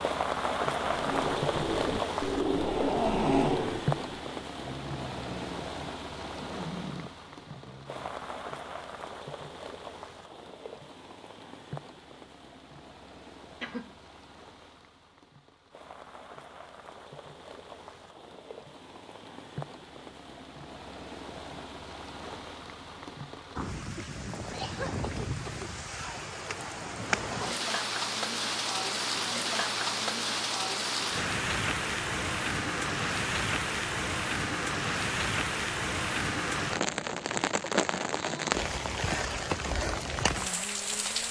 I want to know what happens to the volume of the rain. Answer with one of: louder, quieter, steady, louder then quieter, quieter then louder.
quieter then louder.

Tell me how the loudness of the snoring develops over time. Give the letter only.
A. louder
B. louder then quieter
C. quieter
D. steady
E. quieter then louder
B.